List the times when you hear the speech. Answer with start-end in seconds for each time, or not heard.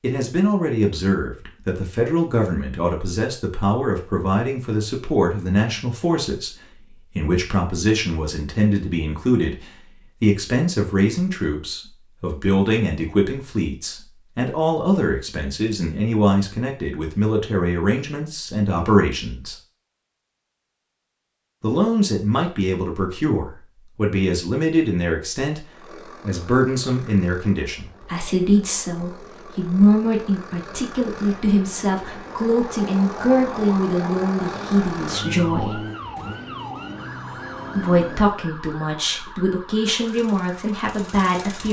0.0-6.5, 7.2-19.6, 21.6-35.8, 37.8-41.6.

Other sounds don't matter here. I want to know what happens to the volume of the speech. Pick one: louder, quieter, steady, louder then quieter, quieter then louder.
steady.